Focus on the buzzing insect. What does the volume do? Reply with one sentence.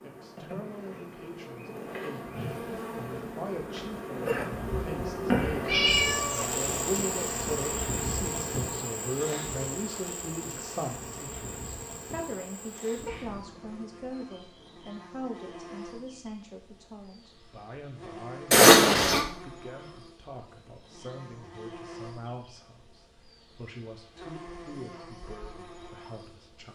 The loudness of the buzzing insect goes down.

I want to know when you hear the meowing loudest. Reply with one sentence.
The loudest moment of the meowing is at 19 seconds.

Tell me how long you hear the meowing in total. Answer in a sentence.
The meowing can be heard for 2 seconds in total.